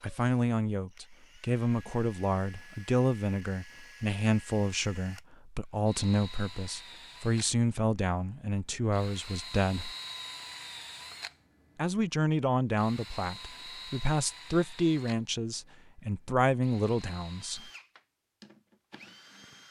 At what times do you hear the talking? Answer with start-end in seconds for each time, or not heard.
0.0-9.9, 11.8-17.7.